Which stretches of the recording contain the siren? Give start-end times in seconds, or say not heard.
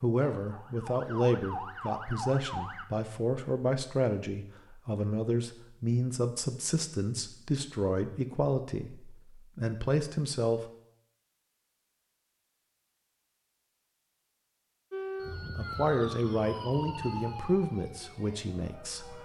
0.1-2.9, 14.9-19.1.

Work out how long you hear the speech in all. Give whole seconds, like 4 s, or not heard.
14 s.